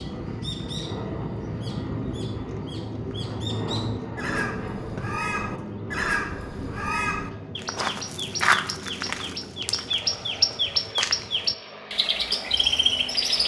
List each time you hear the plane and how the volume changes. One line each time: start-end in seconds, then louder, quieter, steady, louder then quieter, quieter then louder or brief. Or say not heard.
0.0-13.4 quieter.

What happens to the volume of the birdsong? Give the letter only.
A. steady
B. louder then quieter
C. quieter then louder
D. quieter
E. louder
E.